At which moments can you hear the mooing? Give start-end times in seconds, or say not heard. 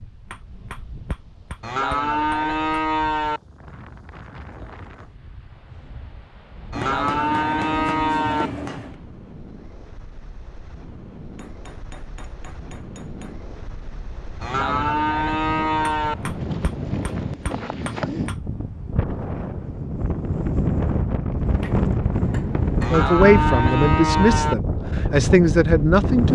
1.6-3.4, 6.7-8.5, 14.4-16.1, 22.8-24.6.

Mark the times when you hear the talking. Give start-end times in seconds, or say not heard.
22.9-26.3.